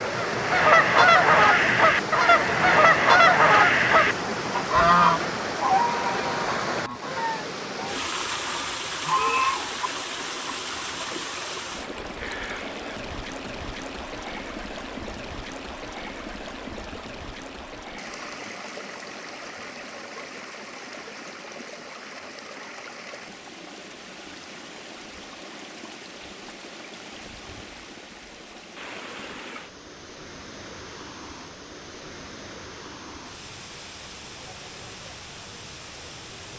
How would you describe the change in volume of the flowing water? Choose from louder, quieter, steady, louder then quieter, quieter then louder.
quieter.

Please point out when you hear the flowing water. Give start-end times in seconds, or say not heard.
0.0-36.5.